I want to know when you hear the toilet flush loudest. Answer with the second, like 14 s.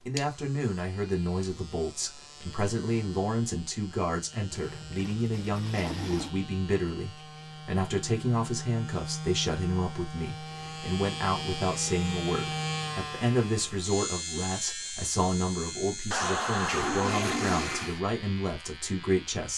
17 s.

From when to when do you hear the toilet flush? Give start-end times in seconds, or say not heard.
4.5-6.3, 16.1-18.0.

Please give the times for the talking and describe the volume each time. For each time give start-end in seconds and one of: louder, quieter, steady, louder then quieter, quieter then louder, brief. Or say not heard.
0.1-19.5 steady.